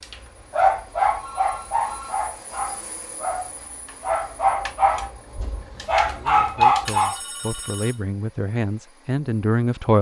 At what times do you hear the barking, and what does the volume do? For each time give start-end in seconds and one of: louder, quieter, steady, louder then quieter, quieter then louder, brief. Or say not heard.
0.1-7.2 quieter then louder.